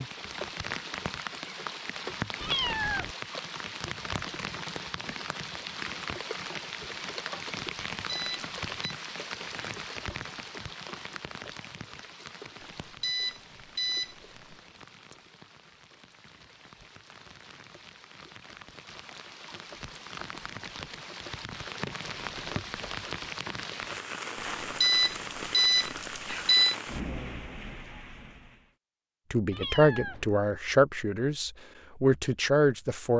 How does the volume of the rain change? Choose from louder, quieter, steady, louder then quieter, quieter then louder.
quieter then louder.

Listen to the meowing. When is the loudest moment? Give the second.
3 s.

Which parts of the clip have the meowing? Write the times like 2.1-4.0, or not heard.
2.4-3.1, 29.5-30.2.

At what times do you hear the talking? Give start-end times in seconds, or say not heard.
29.3-33.1.